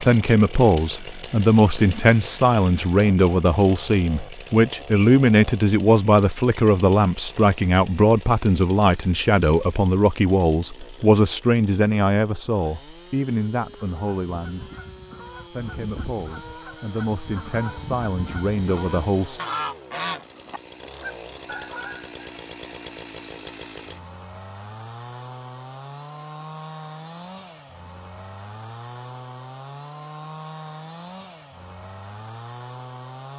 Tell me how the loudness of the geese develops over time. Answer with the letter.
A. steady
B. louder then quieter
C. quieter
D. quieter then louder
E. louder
B.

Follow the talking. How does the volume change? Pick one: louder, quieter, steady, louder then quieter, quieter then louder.
quieter.